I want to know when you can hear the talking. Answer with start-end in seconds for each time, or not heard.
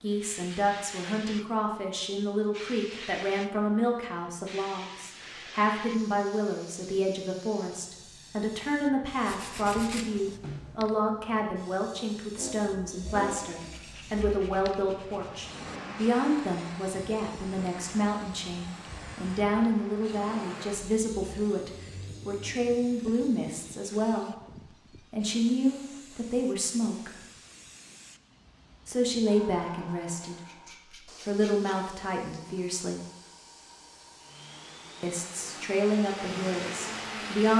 0.0-24.4, 25.1-27.1, 28.9-33.0, 35.0-37.5.